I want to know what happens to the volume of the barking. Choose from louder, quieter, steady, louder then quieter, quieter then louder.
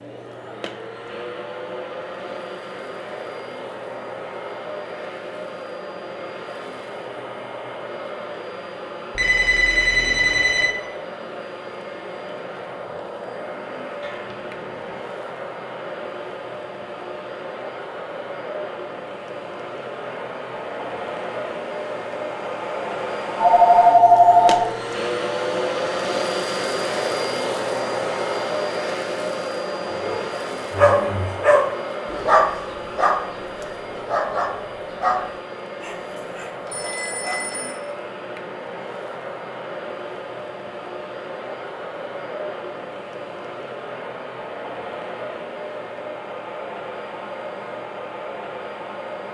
quieter.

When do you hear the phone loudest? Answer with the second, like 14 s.
24 s.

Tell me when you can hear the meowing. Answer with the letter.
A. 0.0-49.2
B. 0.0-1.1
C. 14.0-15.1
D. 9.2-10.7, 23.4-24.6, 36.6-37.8
C.